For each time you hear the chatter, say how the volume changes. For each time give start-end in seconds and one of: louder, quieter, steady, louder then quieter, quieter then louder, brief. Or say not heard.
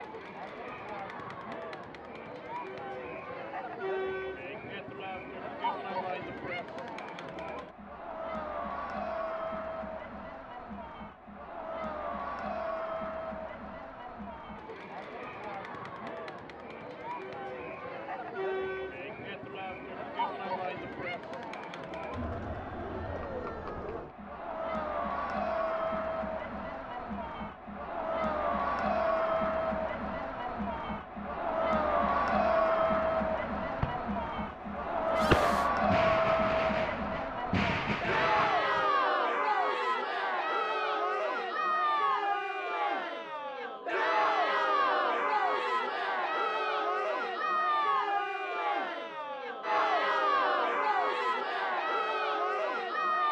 0.0-53.2 louder.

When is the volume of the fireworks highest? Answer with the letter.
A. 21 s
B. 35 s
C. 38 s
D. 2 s
B.